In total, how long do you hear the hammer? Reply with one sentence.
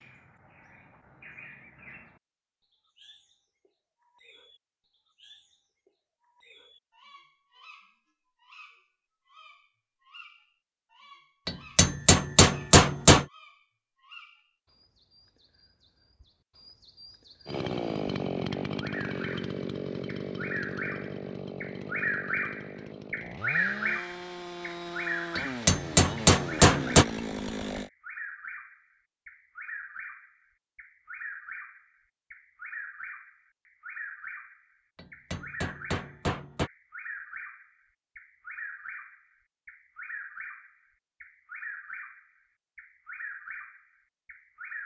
You can hear the hammer for 5 seconds altogether.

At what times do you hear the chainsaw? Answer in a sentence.
You can hear the chainsaw from 17.4 to 27.9 s.